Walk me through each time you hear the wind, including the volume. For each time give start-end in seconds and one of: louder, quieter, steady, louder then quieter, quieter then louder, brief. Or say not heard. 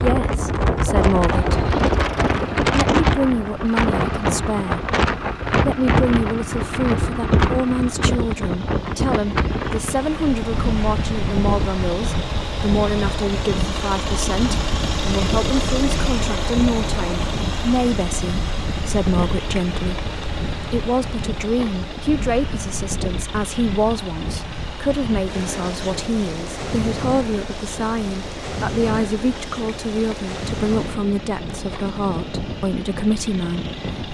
0.0-34.0 quieter.